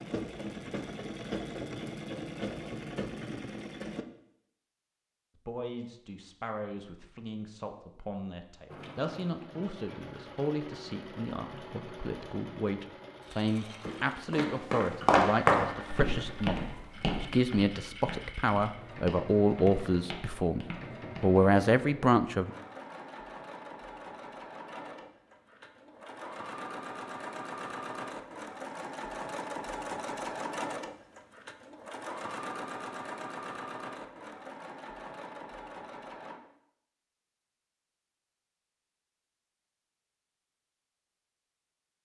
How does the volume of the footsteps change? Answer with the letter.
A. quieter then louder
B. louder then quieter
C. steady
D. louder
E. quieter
E.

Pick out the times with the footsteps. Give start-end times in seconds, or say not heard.
13.8-21.4.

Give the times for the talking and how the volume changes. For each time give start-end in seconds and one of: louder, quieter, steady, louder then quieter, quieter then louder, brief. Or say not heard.
5.3-22.5 louder.